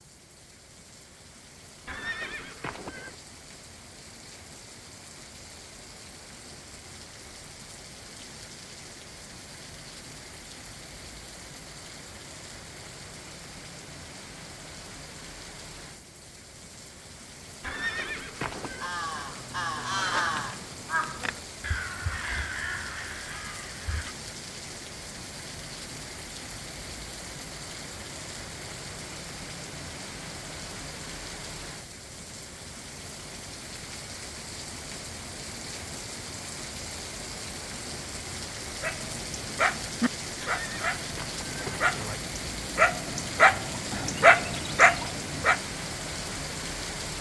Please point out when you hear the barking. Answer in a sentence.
The barking can be heard from 38.8 to 45.6 s.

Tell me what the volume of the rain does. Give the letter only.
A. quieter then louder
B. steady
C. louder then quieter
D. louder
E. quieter
D.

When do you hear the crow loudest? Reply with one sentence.
The loudest moment of the crow is at 20 seconds.